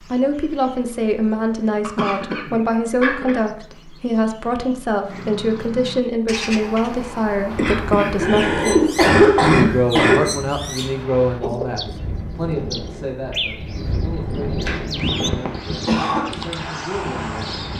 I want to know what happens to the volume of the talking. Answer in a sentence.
The volume of the talking goes down.